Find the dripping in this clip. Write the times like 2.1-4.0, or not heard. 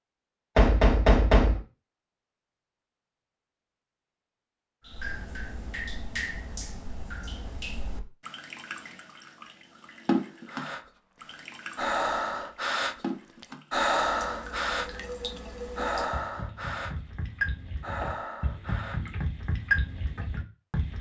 4.8-20.9.